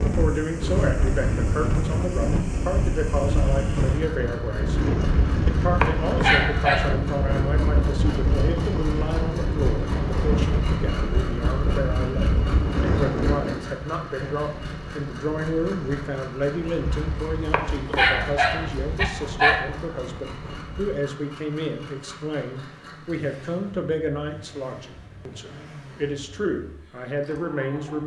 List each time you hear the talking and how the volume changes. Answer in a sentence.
The talking can be heard from 0.0 to 28.0 s, at a steady volume.